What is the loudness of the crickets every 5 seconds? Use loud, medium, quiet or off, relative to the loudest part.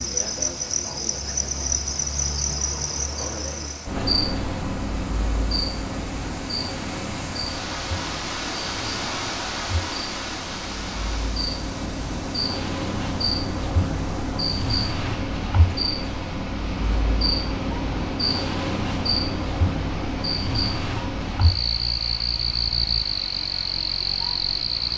loud, medium, loud, loud, loud.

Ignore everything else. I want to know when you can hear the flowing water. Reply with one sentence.
The flowing water can be heard from 0.0 to 24.9 s.